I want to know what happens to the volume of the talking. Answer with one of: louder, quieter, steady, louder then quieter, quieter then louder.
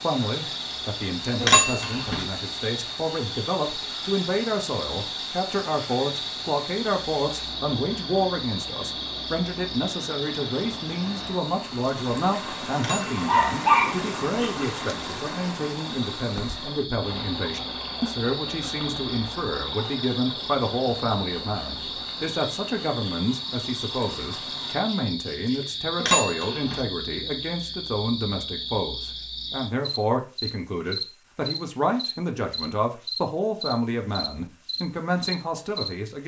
steady.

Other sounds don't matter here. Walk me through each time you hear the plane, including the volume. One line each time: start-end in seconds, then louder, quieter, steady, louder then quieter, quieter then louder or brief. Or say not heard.
not heard.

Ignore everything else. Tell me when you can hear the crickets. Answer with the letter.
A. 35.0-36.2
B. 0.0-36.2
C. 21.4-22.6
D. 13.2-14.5
B.